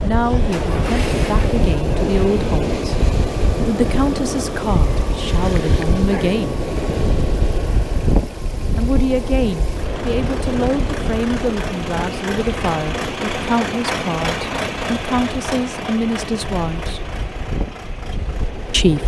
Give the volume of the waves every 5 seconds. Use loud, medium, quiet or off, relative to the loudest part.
loud, loud, medium, medium.